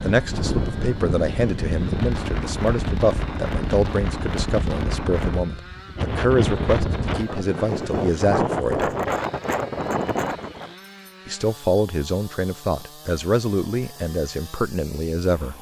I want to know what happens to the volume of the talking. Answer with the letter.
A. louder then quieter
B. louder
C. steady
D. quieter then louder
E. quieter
C.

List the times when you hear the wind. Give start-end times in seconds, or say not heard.
0.0-10.7.